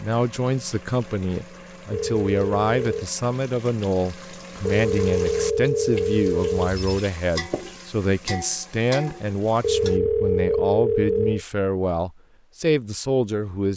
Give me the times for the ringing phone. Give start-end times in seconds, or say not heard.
1.9-3.0, 4.7-7.0, 9.6-11.4.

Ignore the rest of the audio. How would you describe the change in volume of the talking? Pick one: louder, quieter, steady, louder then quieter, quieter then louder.
steady.